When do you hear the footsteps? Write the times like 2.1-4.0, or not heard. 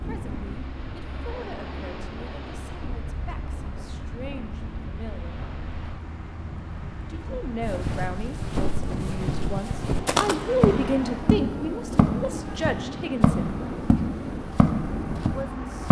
7.6-15.8.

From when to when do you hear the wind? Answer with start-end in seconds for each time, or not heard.
0.0-15.8.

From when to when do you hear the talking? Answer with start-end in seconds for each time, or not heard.
0.0-5.4, 7.0-13.6, 15.2-15.8.